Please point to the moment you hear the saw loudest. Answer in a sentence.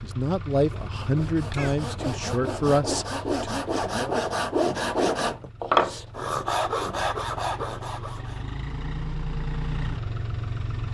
The loudest moment of the saw is at 6 seconds.